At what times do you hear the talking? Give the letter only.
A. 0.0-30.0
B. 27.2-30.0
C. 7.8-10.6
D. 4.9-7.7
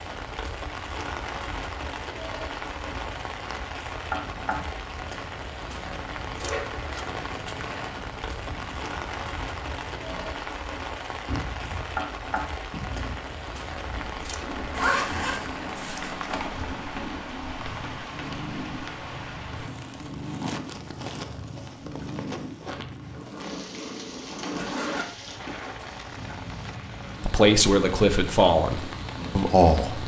B.